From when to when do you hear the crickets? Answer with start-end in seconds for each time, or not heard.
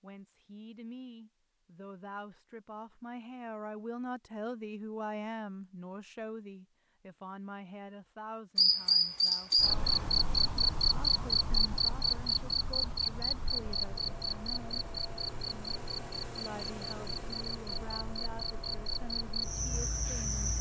8.6-20.5.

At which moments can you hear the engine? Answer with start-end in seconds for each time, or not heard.
13.4-20.5.